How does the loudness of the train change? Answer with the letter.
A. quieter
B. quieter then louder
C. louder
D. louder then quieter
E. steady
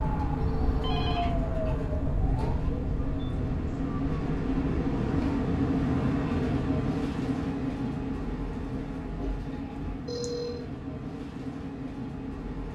D.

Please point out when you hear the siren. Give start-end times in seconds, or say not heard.
0.0-5.3.